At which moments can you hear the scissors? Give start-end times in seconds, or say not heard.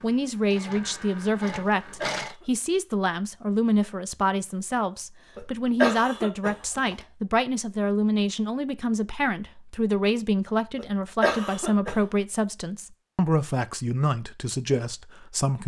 not heard.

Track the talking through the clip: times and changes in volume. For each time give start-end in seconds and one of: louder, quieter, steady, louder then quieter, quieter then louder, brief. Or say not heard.
0.0-15.6 steady.